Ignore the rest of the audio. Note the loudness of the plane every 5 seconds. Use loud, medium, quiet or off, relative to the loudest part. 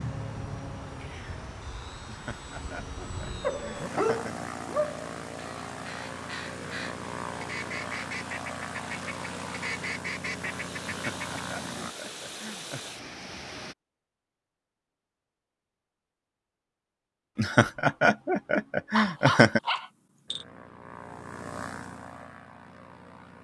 loud, loud, loud, off, medium.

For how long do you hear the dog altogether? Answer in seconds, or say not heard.
3 s.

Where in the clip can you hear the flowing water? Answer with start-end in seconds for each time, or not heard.
0.0-13.8.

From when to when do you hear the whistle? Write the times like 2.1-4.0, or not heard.
not heard.